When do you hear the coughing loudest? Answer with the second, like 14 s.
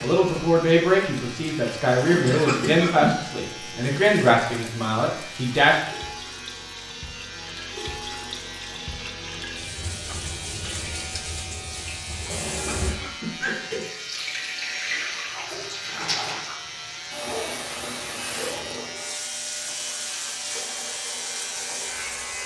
3 s.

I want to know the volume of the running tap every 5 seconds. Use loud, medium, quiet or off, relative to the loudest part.
medium, medium, loud, loud, loud.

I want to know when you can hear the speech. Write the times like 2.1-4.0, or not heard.
0.0-5.8.